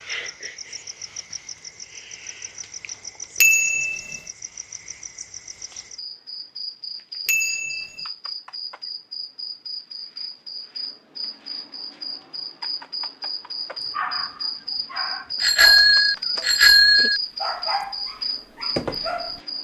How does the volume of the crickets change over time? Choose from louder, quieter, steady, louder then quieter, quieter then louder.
louder.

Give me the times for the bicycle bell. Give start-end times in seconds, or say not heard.
3.4-4.2, 7.2-8.1, 15.4-17.2.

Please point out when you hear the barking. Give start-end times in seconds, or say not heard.
13.8-19.4.